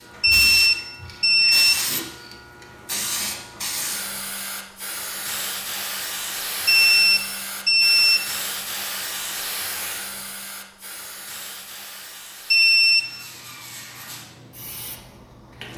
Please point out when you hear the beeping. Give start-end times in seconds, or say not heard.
0.2-1.9, 6.7-8.3, 12.5-13.2.